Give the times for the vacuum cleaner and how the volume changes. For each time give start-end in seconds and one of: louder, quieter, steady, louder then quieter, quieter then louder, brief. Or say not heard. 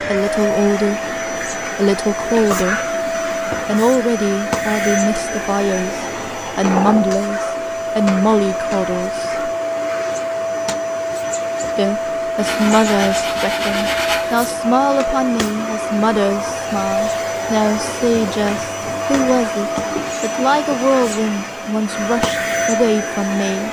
0.0-23.6 steady.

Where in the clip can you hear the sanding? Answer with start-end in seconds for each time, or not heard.
12.3-14.6.